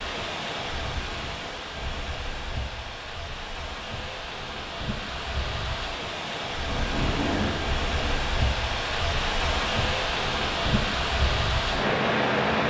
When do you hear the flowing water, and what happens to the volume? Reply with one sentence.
You can hear the flowing water from 0.0 to 12.6 s, getting louder.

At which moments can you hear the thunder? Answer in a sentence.
You can hear the thunder from 6.7 to 8.2 s.